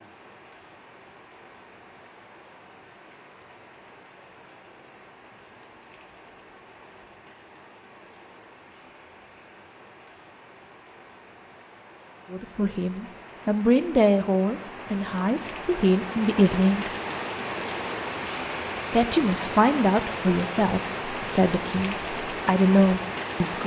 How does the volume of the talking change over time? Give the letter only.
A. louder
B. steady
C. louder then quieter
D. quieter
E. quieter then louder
B.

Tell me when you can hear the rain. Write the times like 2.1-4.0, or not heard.
0.0-23.6.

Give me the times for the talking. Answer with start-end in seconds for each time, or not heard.
12.3-16.9, 18.9-23.6.